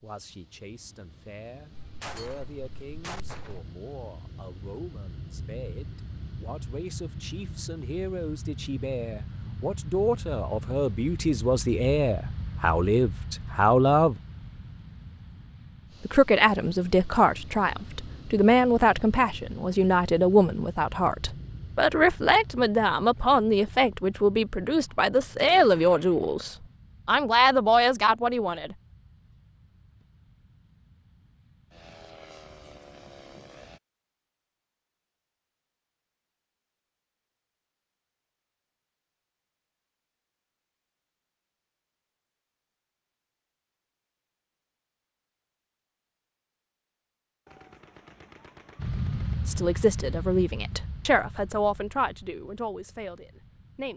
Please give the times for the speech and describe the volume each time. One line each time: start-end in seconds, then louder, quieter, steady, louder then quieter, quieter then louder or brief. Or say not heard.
0.0-14.2 louder
16.1-28.8 steady
49.5-53.9 quieter.